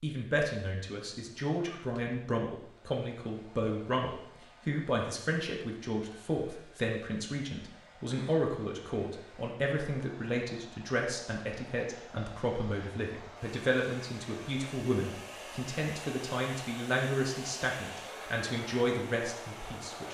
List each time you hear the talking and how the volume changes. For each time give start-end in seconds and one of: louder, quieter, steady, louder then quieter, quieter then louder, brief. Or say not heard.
0.0-20.0 steady.